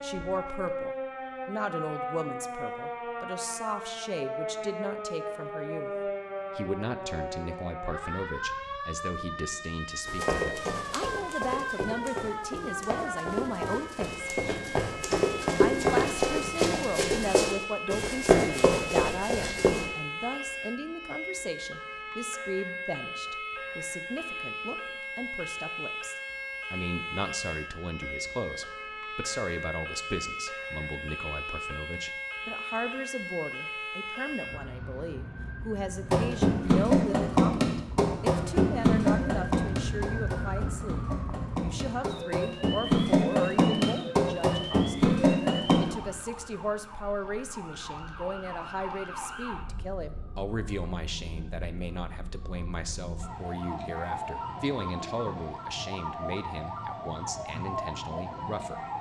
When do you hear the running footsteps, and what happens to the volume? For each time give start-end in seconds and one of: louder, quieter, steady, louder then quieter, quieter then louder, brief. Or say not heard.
10.1-19.9 louder
36.1-45.9 quieter then louder.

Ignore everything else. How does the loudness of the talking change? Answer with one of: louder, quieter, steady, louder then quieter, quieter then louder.
steady.